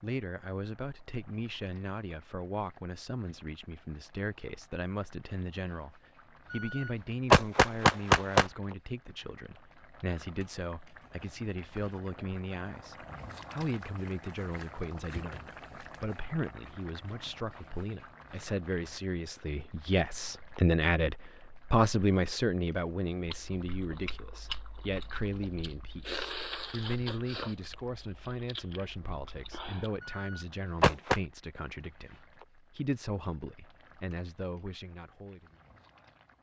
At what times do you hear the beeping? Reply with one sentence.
You can hear the beeping from 6.5 to 8.4 s and from 30.0 to 31.2 s.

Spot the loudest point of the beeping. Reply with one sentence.
The volume of the beeping peaks at 7 seconds.